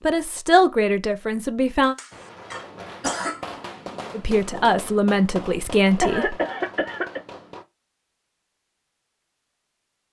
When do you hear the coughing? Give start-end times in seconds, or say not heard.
1.8-3.4, 6.0-7.2.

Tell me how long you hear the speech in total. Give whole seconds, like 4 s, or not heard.
4 s.